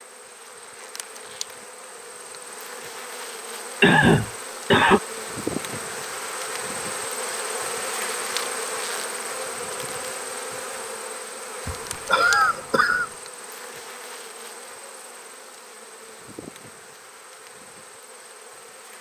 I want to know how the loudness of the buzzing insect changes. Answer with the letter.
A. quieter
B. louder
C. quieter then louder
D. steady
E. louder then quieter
E.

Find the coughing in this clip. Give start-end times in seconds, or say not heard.
3.8-5.0, 11.7-13.1.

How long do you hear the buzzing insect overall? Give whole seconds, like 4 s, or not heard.
19 s.